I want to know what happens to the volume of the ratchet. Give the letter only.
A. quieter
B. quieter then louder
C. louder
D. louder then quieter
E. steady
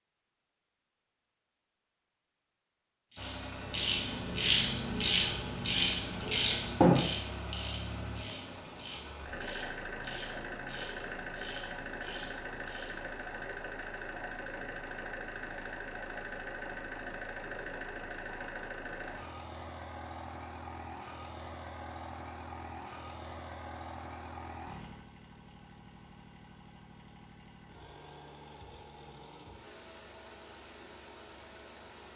A.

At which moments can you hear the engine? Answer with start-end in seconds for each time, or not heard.
3.1-32.1.